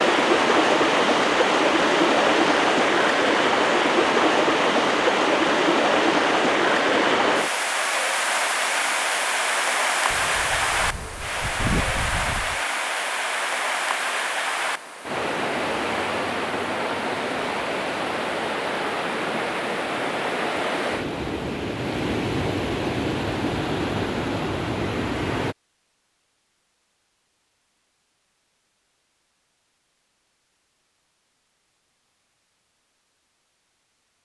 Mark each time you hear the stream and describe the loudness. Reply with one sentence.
The stream can be heard from 0.0 to 25.6 s, getting quieter.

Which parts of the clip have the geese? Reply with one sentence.
You can hear the geese from 10.1 to 12.6 s.